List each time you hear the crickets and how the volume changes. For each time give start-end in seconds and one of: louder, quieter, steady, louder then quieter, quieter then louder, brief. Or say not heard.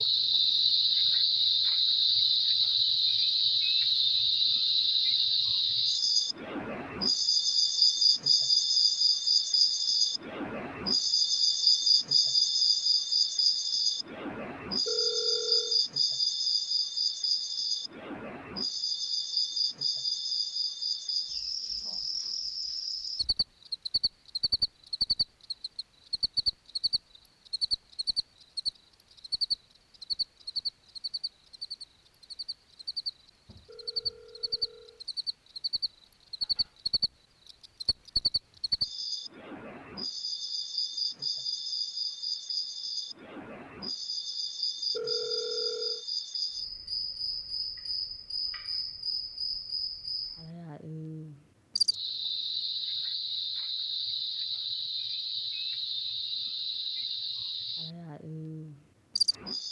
0.0-59.6 quieter.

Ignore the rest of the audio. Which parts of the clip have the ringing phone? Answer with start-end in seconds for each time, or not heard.
14.8-15.8, 33.6-35.0, 44.9-46.0.